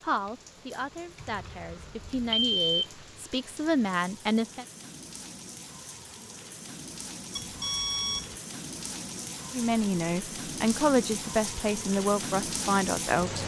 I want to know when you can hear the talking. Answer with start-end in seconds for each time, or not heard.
0.0-4.7, 9.5-13.4.